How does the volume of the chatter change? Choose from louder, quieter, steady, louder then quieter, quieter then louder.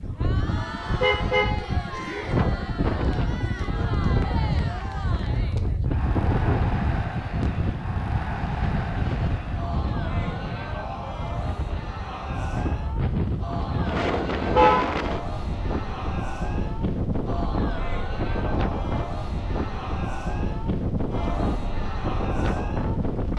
steady.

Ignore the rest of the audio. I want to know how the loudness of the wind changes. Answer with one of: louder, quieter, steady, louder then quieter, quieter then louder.
steady.